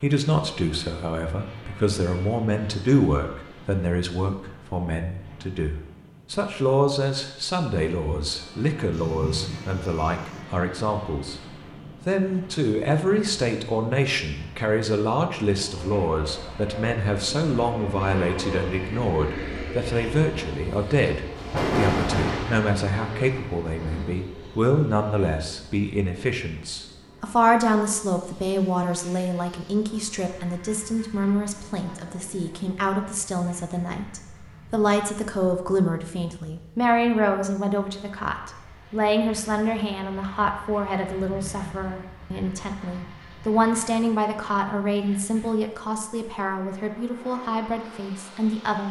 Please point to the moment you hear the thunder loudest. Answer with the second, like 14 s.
22 s.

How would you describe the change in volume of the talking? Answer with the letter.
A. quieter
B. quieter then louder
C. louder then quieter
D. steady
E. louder
D.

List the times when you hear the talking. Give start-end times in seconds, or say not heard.
0.0-48.8.